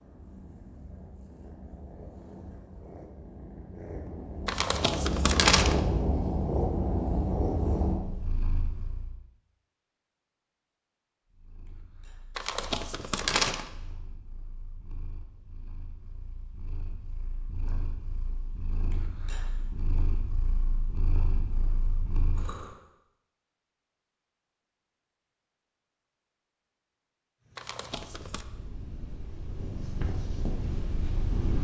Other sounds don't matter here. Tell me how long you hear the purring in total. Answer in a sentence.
The purring can be heard for 25 seconds in total.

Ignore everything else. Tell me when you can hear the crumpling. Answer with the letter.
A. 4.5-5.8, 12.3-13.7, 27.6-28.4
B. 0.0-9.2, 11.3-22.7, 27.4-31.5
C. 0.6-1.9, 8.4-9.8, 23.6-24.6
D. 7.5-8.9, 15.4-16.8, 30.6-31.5
A.